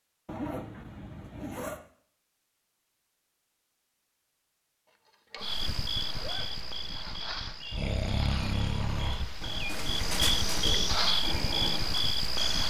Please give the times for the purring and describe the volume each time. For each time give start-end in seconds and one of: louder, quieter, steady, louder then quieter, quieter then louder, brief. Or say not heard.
not heard.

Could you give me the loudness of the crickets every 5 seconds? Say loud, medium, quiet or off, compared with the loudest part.
off, medium, loud.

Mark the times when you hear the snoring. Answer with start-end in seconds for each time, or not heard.
7.7-12.6.